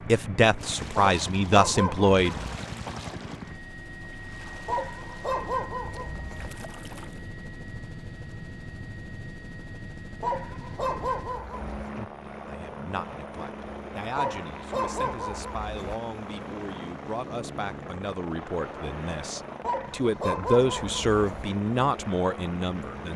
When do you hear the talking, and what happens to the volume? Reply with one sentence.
The talking can be heard briefly from 0.1 to 2.4 s; and from 11.9 to 23.1 s, getting louder.